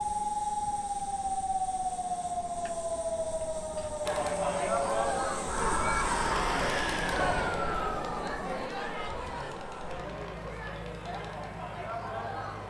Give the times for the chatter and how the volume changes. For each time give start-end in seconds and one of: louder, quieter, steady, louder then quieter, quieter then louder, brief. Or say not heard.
4.0-12.6 quieter.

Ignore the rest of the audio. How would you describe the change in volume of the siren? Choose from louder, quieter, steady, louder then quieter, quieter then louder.
steady.